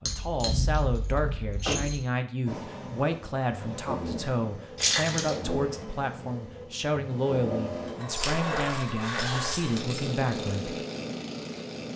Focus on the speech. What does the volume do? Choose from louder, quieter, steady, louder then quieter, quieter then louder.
steady.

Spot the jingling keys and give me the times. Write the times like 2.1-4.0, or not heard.
0.1-2.0, 4.8-5.3, 8.1-10.1.